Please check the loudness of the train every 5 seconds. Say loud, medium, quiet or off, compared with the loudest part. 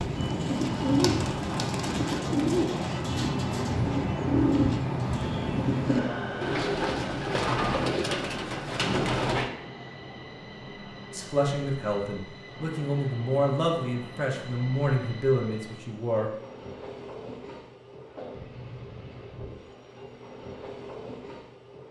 loud, loud, medium, medium, medium.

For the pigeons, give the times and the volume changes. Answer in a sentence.
The pigeons can be heard from 0.0 to 9.5 s, at a steady volume.